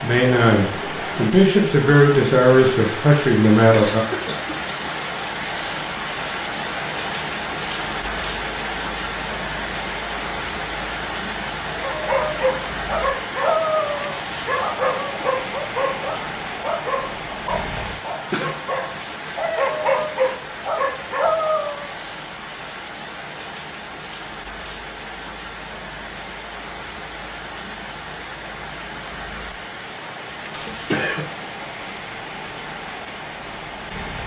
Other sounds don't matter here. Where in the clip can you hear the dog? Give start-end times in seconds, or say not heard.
11.7-21.9.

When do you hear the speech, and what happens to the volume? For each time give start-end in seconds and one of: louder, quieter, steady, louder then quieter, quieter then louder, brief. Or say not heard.
0.0-4.0 steady.